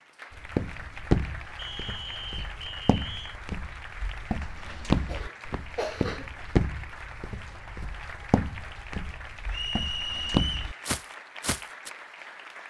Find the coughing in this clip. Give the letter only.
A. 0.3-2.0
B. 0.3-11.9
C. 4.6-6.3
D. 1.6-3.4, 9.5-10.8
C.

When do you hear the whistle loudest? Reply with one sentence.
The volume of the whistle peaks at 10 seconds.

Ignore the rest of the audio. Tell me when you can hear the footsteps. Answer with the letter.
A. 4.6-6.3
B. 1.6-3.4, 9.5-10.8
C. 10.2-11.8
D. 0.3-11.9
D.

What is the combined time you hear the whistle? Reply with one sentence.
The whistle can be heard for 3 seconds in total.